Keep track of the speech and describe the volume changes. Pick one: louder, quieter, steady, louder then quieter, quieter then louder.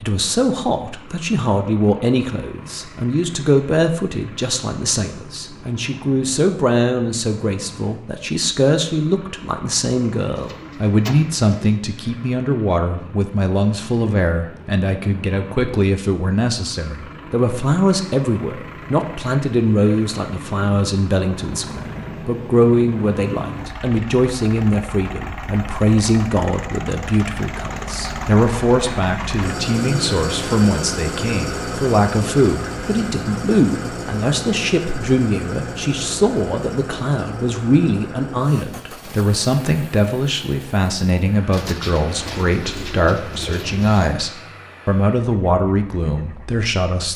steady.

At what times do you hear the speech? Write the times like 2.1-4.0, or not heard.
0.0-47.1.